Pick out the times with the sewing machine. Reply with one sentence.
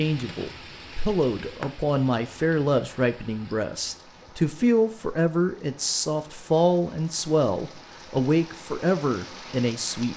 The sewing machine can't be heard in this clip.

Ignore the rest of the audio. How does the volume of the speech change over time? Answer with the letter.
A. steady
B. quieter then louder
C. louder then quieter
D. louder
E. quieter
A.